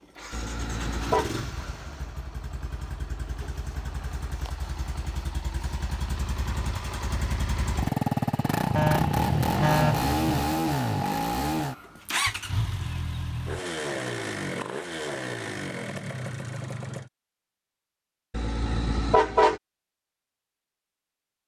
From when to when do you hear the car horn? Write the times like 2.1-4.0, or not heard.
0.3-1.3, 8.8-10.3, 18.3-19.6.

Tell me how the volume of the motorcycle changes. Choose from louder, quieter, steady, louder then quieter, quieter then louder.
louder then quieter.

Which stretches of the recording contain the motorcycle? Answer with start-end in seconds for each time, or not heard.
0.0-17.1.